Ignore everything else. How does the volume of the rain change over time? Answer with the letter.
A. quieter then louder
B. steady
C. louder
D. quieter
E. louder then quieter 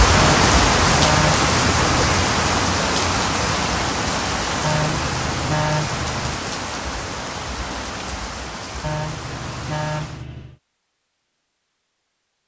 D.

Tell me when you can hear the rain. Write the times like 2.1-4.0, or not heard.
0.0-10.2.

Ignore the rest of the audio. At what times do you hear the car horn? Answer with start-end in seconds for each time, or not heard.
0.1-2.1, 4.6-6.3, 8.8-10.6.